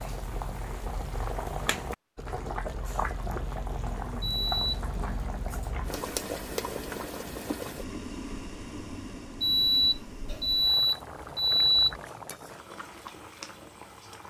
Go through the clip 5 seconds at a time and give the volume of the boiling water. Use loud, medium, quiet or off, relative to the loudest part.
loud, loud, medium.